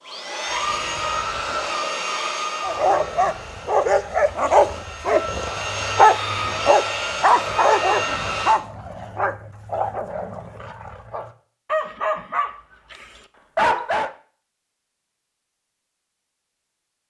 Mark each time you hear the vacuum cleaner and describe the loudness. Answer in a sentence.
You can hear the vacuum cleaner from 0.0 to 8.6 s, getting quieter then louder.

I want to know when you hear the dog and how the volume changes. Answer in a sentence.
The dog can be heard from 2.6 to 14.1 s, getting quieter then louder.